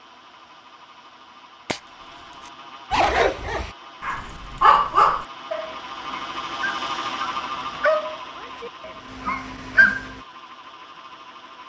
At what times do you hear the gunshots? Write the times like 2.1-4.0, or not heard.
1.6-2.5.